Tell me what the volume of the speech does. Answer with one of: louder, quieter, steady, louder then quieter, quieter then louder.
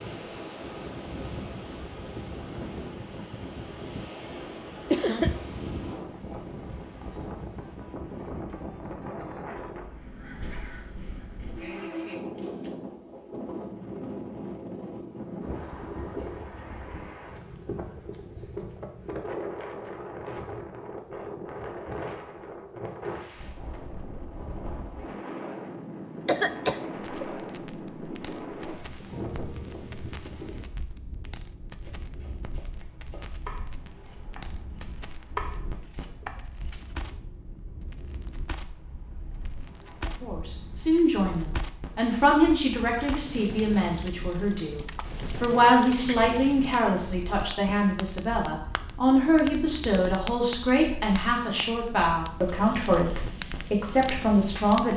steady.